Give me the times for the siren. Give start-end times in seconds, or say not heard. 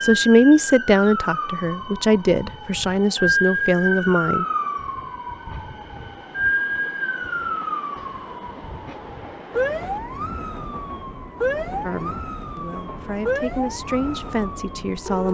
0.0-15.2.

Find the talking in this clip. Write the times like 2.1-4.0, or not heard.
0.0-4.5, 11.8-15.2.